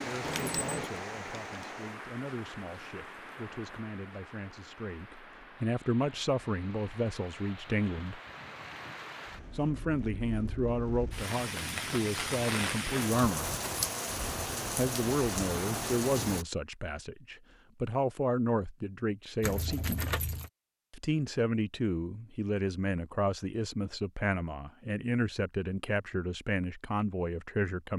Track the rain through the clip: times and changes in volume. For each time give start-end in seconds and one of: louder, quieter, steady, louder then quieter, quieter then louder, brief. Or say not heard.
0.0-16.4 quieter then louder.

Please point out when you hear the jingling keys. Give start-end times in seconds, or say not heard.
0.2-0.9, 13.5-13.9, 19.4-20.5.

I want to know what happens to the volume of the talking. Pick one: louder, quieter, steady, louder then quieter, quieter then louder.
louder.